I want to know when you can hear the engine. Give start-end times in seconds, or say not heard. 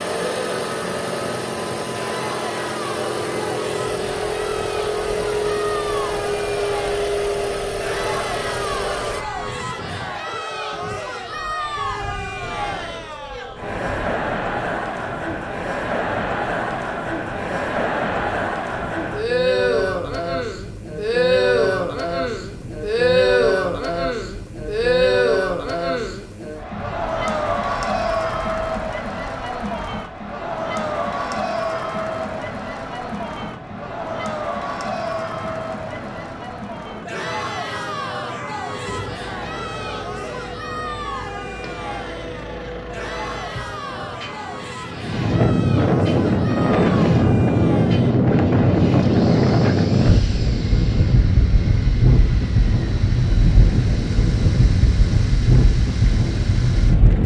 0.0-9.2, 38.9-57.2.